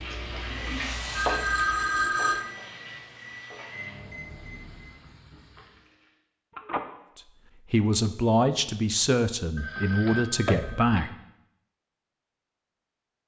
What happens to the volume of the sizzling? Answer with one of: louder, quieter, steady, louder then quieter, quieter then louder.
quieter.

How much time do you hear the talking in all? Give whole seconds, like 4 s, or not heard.
4 s.